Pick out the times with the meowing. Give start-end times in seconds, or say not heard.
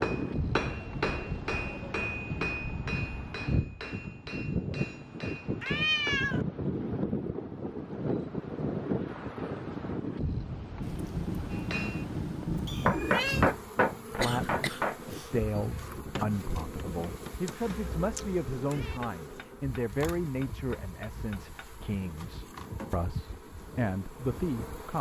5.6-6.5, 10.8-13.4, 17.4-19.0.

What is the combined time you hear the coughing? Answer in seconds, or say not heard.
2 s.